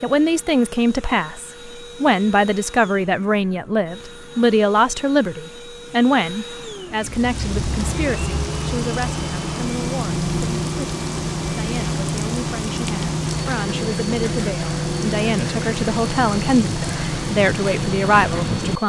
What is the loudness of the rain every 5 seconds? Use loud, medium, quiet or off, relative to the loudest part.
off, loud, loud, loud.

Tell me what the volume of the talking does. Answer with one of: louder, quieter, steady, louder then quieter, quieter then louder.
quieter then louder.